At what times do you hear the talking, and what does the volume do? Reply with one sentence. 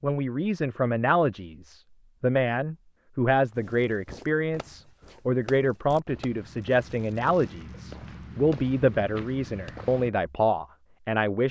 The talking can be heard from 0.0 to 11.4 s, at a steady volume.